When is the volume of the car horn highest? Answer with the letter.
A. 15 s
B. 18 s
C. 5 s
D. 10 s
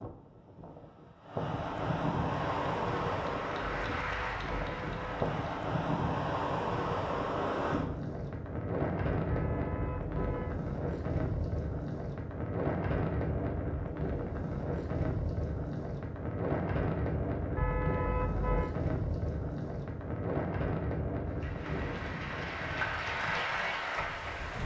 B.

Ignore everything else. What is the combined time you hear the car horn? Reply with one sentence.
The car horn can be heard for 4 seconds in total.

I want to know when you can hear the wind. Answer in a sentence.
The wind can be heard from 0.0 to 24.6 s.